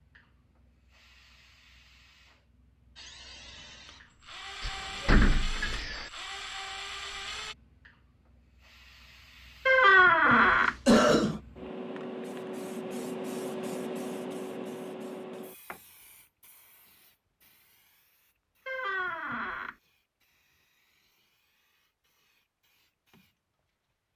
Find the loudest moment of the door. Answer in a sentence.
The loudest moment of the door is at 10 seconds.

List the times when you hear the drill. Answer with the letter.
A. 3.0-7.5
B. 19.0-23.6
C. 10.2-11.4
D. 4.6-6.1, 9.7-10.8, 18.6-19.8
A.